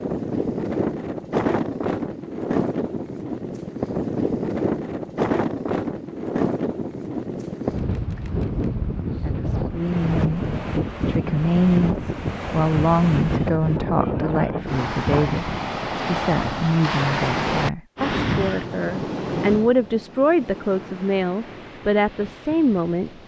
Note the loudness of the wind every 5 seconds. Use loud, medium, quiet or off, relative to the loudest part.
loud, loud, loud, loud, quiet.